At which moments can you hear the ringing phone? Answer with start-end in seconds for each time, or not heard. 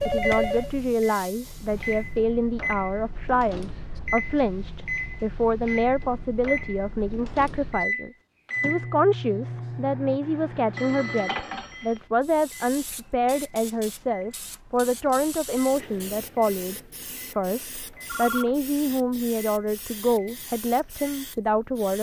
0.0-0.7, 10.8-12.0, 18.1-18.6.